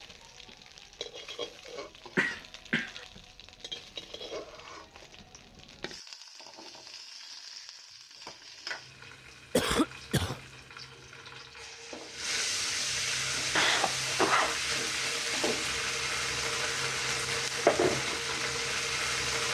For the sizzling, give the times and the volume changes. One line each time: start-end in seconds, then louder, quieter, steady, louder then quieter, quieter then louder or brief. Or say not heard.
0.0-19.4 louder.